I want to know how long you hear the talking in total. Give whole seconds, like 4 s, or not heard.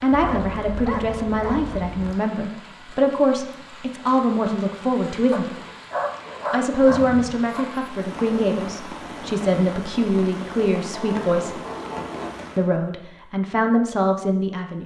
13 s.